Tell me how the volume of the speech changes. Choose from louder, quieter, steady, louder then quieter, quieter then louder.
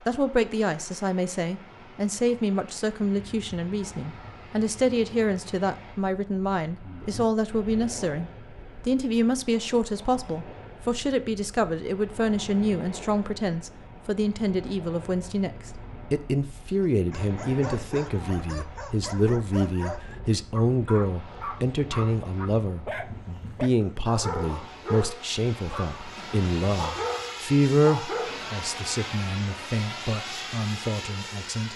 steady.